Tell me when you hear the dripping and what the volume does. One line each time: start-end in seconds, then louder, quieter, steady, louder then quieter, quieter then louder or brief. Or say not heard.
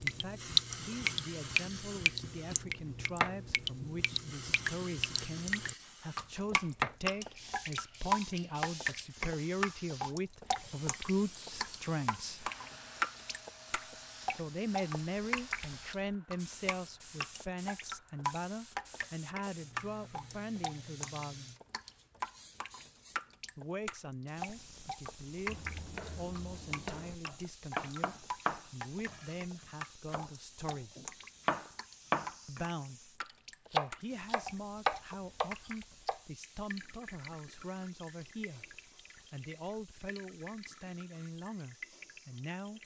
0.0-42.8 quieter.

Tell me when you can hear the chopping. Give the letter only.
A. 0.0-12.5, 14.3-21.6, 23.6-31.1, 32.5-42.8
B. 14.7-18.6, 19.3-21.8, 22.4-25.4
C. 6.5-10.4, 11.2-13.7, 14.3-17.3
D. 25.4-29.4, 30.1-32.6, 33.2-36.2
D.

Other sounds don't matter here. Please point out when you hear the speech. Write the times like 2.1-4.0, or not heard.
0.0-12.5, 14.3-21.6, 23.6-31.1, 32.5-42.8.